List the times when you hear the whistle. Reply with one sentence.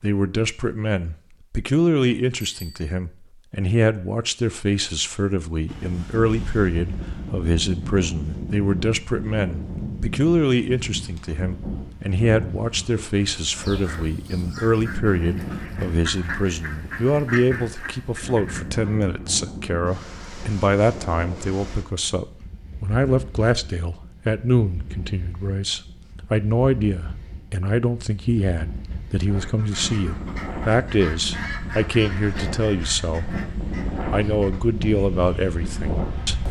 You can't hear the whistle here.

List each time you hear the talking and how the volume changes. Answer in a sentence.
The talking can be heard from 0.0 to 33.4 s, at a steady volume; and briefly from 34.1 to 36.4 s.